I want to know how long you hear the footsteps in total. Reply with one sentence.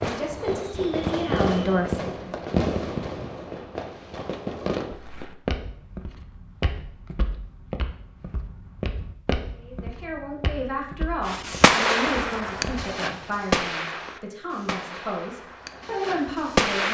You can hear the footsteps for 8 seconds altogether.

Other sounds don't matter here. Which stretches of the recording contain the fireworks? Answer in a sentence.
You can hear the fireworks from 0.0 to 5.0 s and from 11.2 to 16.8 s.